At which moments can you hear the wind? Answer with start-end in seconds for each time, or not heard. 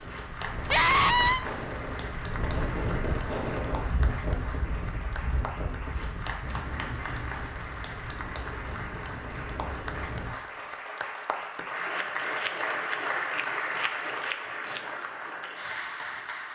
0.0-10.6.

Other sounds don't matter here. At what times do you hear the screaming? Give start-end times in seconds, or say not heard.
0.7-1.4.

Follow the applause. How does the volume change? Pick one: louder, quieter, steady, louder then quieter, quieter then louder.
louder.